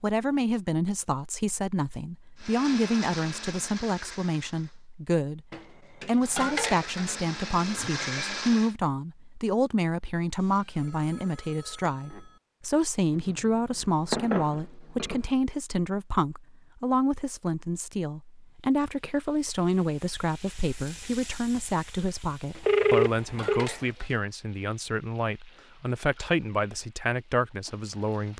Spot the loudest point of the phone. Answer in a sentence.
The loudest moment of the phone is at 23 seconds.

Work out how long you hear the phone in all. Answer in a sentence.
The phone can be heard for 3 seconds in total.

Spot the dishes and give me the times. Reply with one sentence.
You can hear the dishes from 5.5 to 7.2 s, from 13.1 to 15.3 s and from 22.5 to 24.1 s.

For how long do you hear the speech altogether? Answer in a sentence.
The speech can be heard for 28 seconds in total.